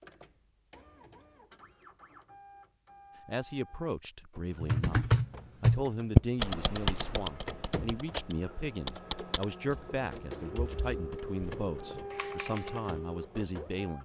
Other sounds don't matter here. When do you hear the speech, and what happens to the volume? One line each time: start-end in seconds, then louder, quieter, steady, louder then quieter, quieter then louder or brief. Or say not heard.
3.2-13.9 steady.